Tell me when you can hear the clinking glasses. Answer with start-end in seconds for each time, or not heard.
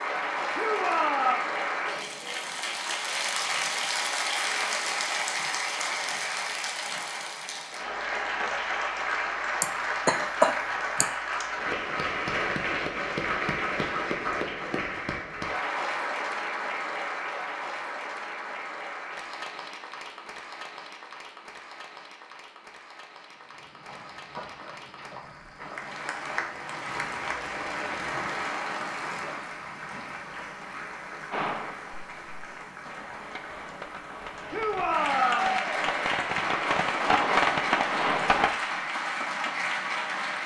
not heard.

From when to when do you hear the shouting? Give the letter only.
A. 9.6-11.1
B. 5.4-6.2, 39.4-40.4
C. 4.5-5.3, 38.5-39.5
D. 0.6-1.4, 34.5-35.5
D.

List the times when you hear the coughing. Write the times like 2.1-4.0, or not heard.
9.6-11.1.